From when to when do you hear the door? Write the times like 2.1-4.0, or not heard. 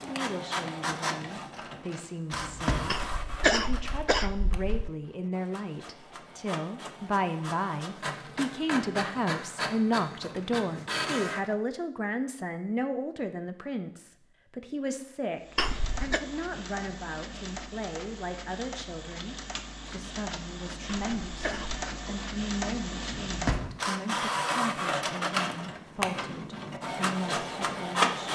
2.3-3.0, 23.1-23.8.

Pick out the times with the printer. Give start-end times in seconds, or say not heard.
0.0-11.6, 15.3-28.3.